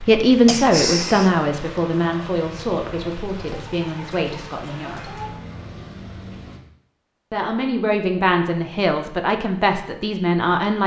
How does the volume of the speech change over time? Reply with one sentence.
The volume of the speech goes down, then up.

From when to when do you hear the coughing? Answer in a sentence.
The coughing can be heard from 0.5 to 1.4 s.